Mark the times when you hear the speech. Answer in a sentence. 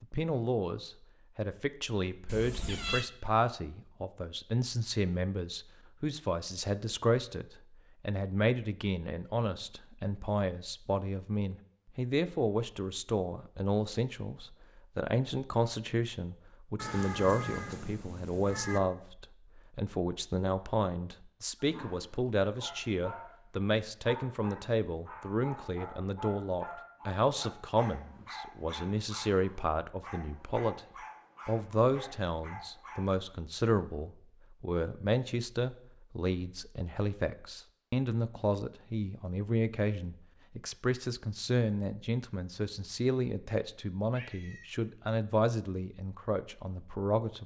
The speech can be heard from 0.0 to 30.8 s and from 31.4 to 47.4 s.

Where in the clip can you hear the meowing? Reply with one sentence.
The meowing can be heard from 2.2 to 3.0 s, from 16.8 to 18.8 s and from 44.1 to 44.8 s.